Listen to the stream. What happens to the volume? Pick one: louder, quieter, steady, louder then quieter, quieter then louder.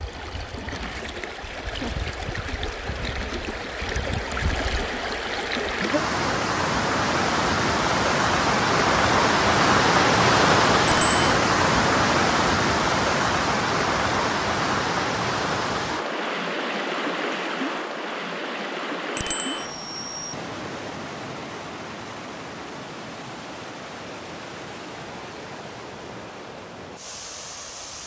louder then quieter.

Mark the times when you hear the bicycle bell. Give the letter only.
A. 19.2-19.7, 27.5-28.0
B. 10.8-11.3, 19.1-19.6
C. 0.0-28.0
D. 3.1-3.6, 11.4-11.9
B.